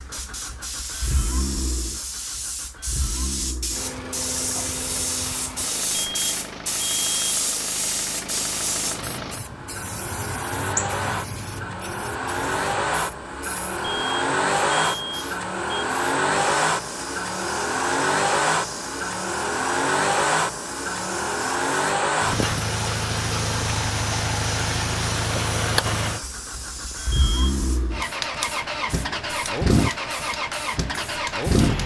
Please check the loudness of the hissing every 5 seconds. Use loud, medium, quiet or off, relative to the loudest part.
loud, loud, medium, medium, medium, medium, medium.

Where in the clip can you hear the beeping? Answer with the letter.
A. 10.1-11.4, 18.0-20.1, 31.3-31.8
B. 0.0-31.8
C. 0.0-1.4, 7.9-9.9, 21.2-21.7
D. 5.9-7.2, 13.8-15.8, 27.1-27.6
D.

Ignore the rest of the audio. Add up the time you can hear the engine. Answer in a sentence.
The engine can be heard for 32 seconds in total.